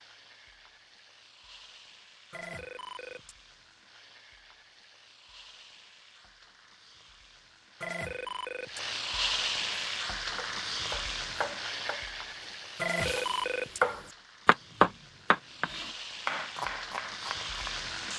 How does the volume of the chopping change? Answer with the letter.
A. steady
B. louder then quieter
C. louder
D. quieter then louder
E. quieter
B.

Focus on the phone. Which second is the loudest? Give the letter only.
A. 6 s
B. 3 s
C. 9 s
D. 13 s
D.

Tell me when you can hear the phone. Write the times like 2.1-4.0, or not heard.
2.3-3.4, 7.8-8.8, 12.8-13.8.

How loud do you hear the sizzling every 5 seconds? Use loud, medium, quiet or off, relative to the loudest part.
quiet, loud, loud, loud.